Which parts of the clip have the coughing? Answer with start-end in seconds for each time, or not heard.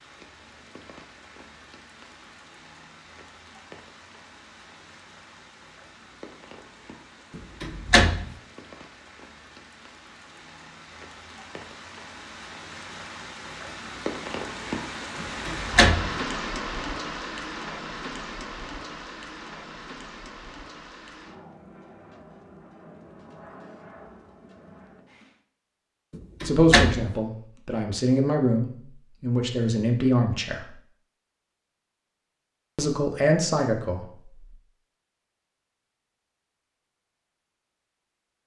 not heard.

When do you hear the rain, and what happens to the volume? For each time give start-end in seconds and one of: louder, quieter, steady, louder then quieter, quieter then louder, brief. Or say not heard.
0.0-25.4 louder then quieter.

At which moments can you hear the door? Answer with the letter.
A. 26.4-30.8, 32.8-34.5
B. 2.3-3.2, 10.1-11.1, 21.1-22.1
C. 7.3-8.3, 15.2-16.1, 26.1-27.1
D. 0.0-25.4
C.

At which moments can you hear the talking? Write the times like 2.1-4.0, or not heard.
26.4-30.8, 32.8-34.5.